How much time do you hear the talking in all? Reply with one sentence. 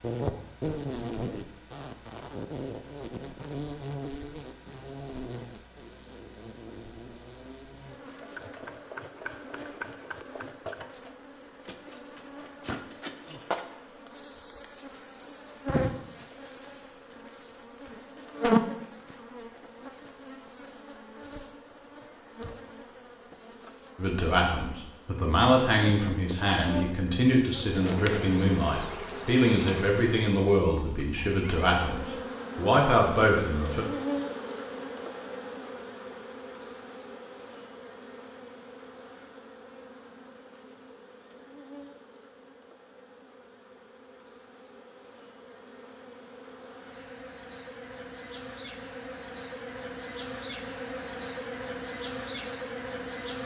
The talking can be heard for 10 seconds in total.